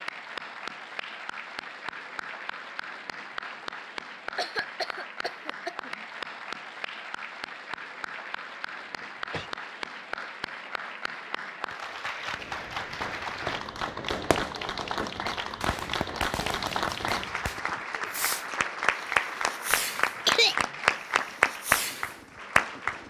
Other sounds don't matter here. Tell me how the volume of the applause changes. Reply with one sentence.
The loudness of the applause goes up.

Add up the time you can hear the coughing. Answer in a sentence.
The coughing can be heard for 3 seconds in total.